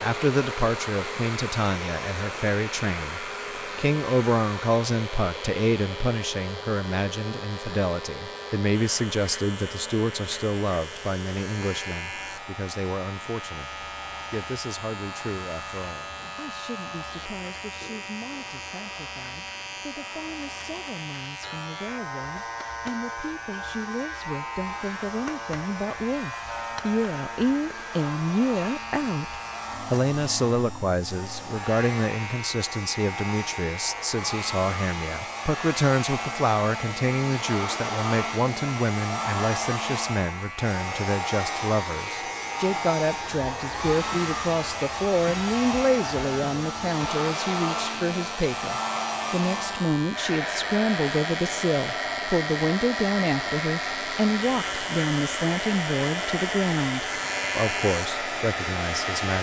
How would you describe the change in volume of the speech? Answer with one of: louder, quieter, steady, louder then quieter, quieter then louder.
quieter then louder.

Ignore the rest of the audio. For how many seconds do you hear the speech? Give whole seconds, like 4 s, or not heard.
59 s.